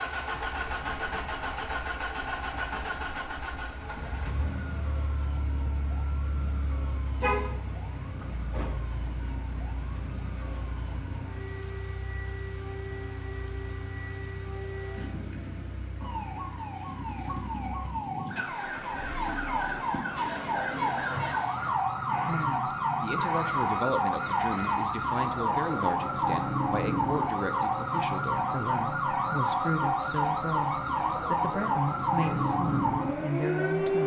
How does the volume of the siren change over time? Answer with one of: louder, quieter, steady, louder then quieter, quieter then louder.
louder.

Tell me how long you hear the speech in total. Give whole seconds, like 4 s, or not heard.
12 s.